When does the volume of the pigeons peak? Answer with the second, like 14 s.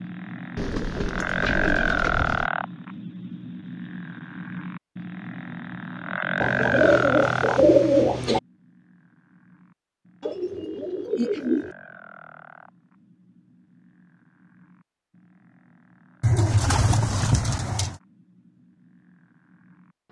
8 s.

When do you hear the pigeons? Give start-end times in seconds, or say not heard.
0.6-2.5, 6.4-8.4, 10.2-11.8, 16.2-17.9.